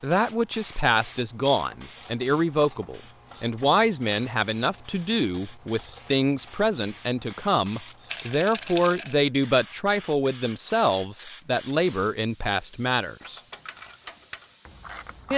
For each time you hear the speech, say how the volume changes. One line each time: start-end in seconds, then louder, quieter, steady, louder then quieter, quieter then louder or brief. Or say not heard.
0.0-13.4 steady.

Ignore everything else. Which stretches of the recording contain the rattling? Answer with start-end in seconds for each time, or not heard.
8.1-9.2.